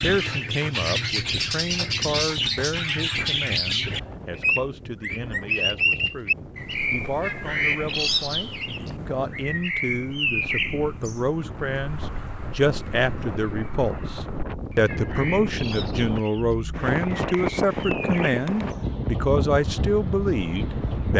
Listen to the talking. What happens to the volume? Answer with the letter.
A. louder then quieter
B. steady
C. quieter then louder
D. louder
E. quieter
D.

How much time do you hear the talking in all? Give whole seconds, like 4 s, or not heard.
21 s.